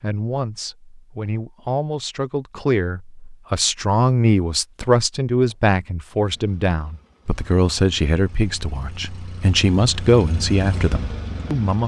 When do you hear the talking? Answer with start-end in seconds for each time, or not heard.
0.0-11.8.